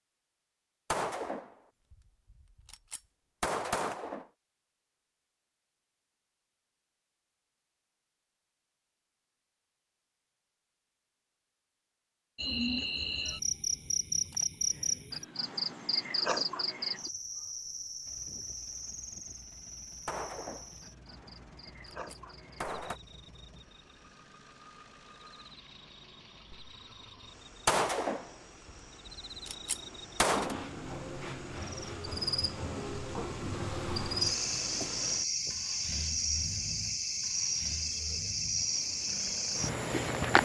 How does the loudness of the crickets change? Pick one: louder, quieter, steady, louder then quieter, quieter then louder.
quieter then louder.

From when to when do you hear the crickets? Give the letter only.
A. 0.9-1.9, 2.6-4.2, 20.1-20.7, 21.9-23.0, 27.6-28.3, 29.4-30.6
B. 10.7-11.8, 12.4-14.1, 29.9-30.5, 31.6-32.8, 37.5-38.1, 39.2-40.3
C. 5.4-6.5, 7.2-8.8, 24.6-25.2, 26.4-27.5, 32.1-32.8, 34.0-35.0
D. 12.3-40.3
D.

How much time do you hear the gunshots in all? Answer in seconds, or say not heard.
6 s.